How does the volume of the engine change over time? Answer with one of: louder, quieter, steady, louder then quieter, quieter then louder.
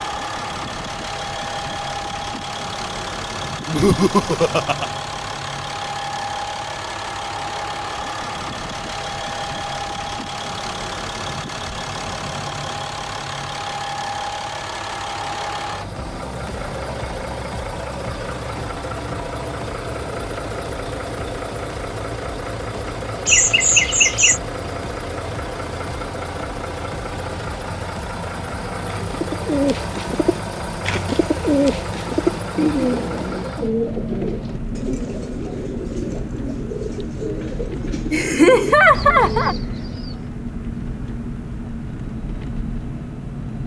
steady.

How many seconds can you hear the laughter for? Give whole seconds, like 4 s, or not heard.
4 s.